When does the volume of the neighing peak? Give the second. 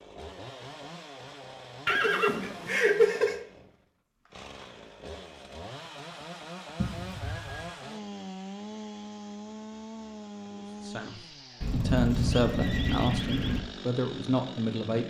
3 s.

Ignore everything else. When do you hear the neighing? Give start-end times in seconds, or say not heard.
1.9-3.5, 6.8-7.7, 11.6-13.6.